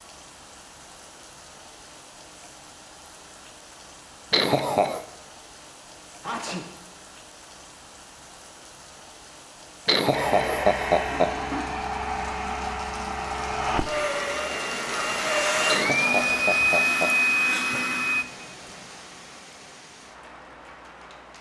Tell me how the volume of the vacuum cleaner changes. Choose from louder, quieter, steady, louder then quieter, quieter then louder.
louder.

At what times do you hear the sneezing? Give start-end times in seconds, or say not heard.
6.2-6.7, 17.4-17.8.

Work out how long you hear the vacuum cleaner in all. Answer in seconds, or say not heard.
8 s.